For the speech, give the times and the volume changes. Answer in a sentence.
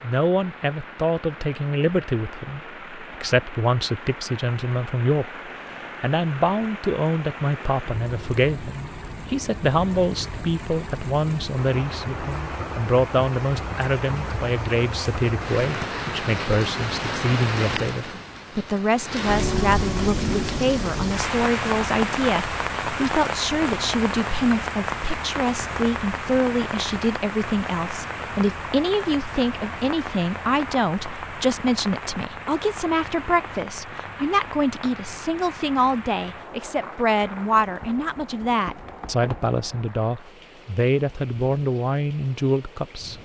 You can hear the speech from 0.0 to 43.1 s, at a steady volume.